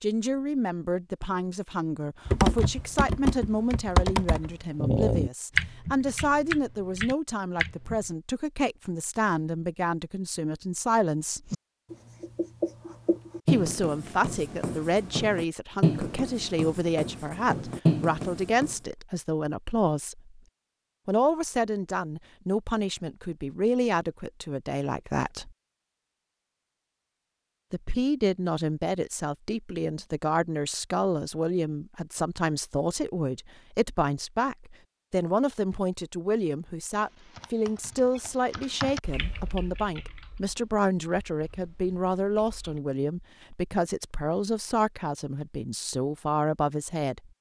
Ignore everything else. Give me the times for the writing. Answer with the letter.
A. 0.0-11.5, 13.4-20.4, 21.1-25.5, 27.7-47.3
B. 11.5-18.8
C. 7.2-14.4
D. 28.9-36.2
B.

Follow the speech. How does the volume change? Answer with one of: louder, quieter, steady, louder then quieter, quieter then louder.
steady.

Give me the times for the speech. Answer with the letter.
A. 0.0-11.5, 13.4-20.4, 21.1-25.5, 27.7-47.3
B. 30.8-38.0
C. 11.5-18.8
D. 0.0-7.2
A.